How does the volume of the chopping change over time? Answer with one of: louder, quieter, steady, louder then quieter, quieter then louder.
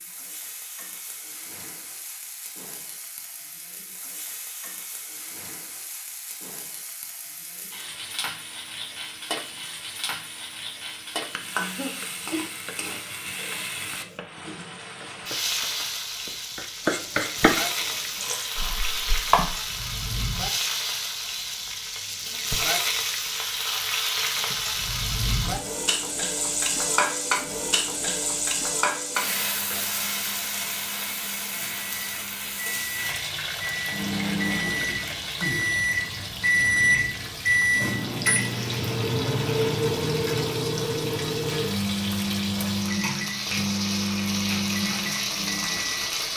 louder then quieter.